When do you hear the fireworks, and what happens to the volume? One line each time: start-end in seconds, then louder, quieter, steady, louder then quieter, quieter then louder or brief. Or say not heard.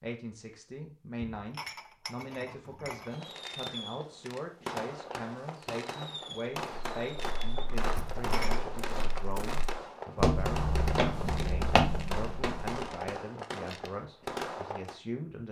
3.0-15.0 steady.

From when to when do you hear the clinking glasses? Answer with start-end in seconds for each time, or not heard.
1.4-3.2, 8.0-8.7.